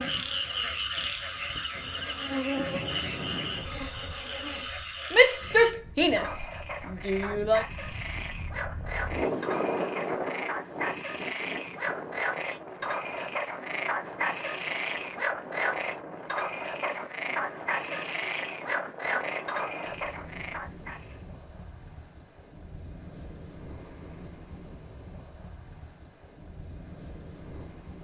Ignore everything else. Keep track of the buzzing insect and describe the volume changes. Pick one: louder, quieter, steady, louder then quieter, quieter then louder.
louder then quieter.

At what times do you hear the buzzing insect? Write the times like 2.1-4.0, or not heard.
0.0-4.7.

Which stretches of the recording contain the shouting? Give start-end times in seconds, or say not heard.
5.1-7.7.